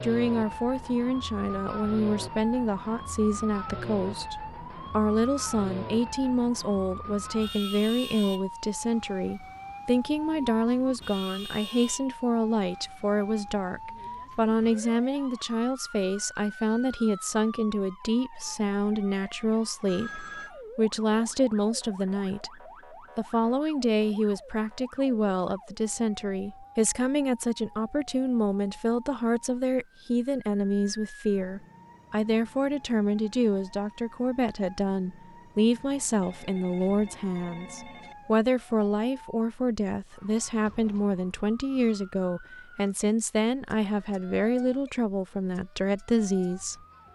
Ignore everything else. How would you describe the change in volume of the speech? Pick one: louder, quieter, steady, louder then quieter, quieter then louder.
steady.